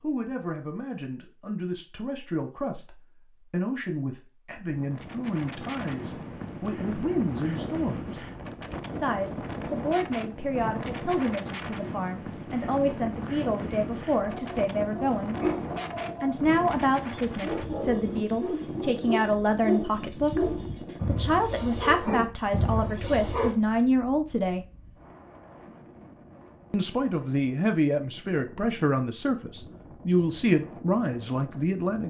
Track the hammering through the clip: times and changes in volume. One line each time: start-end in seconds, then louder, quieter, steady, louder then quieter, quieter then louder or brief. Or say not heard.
not heard.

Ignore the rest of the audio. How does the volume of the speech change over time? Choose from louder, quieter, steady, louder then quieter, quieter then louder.
louder.